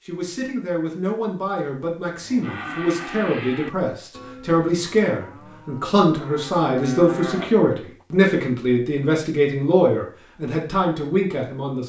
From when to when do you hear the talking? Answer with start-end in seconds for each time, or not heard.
0.1-11.8.